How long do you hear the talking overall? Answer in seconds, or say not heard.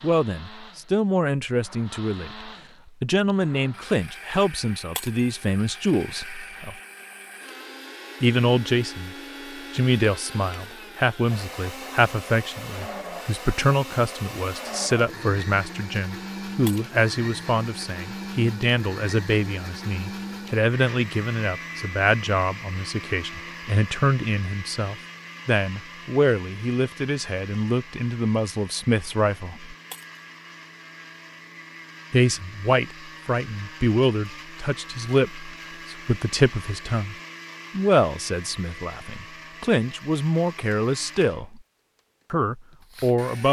39 s.